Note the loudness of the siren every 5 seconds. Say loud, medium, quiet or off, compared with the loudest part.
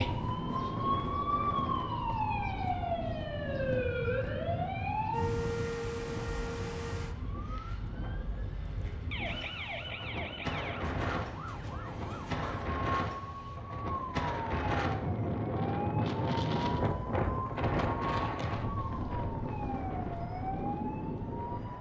loud, medium, medium, medium, medium.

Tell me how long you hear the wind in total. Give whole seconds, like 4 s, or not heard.
22 s.